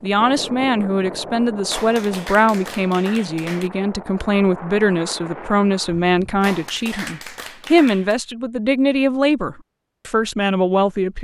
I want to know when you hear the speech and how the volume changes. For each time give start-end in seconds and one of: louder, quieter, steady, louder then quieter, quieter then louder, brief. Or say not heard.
0.0-11.2 steady.